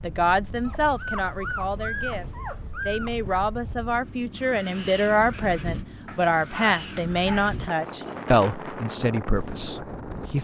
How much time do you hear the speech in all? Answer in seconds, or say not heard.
10 s.